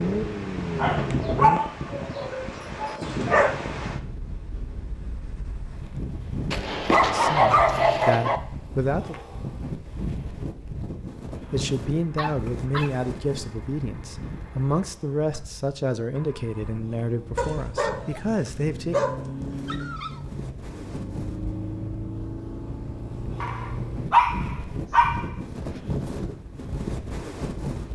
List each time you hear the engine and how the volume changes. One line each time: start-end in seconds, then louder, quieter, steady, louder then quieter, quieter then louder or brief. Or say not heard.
0.0-1.6 brief
11.4-24.1 louder.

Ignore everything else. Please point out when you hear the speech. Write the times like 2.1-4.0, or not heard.
7.0-9.2, 11.4-19.1.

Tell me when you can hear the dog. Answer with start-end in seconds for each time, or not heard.
0.8-3.5, 6.5-8.4, 12.2-12.9, 17.4-20.2, 23.4-25.8.